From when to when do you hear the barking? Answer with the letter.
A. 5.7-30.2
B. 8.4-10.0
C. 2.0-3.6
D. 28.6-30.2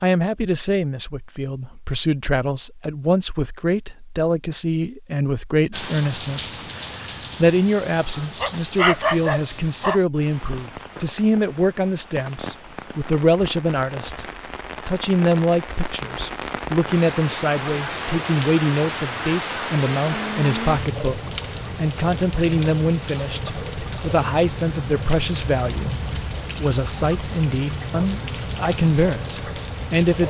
B.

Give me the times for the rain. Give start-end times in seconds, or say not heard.
5.7-30.2.